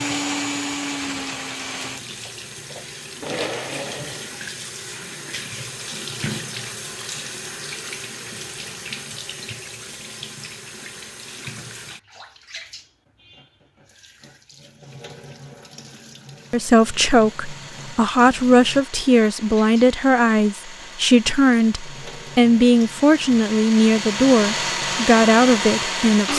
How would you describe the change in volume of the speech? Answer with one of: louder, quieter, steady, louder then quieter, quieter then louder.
steady.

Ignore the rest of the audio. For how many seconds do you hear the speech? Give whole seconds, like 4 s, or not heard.
10 s.